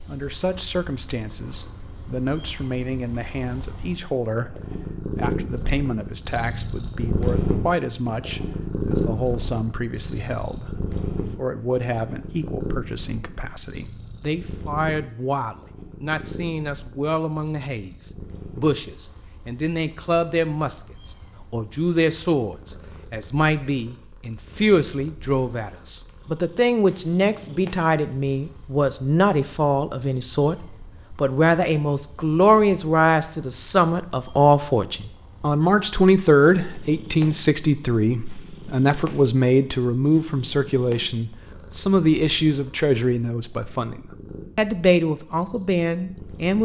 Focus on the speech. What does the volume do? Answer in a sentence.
The loudness of the speech goes up.